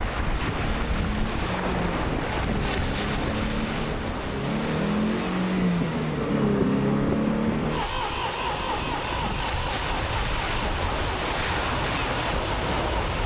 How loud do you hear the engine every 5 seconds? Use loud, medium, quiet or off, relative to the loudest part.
medium, loud, medium.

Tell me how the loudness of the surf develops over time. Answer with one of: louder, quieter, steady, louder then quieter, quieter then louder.
quieter then louder.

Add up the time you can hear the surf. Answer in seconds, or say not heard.
13 s.